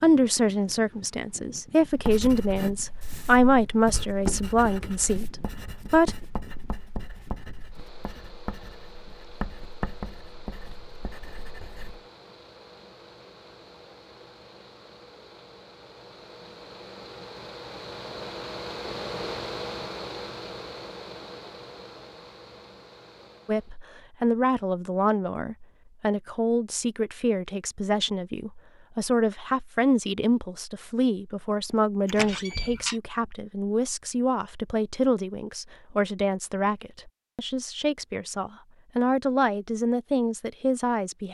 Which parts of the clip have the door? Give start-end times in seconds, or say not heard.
32.0-33.0.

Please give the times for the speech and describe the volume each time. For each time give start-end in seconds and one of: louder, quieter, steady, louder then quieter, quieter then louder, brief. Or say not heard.
0.0-6.2 louder then quieter
23.4-41.3 steady.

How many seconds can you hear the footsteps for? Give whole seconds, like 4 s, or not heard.
not heard.